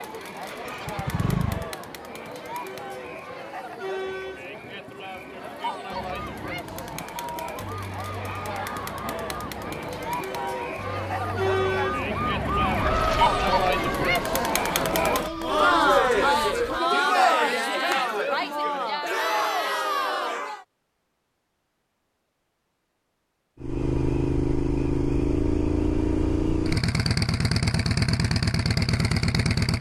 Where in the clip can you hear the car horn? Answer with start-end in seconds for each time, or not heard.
not heard.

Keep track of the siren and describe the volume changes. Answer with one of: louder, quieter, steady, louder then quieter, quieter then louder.
louder then quieter.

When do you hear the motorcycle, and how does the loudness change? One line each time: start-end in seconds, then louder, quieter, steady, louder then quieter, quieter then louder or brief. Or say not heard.
0.0-1.8 brief
23.6-29.7 steady.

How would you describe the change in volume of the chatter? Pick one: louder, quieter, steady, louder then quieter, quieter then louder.
louder.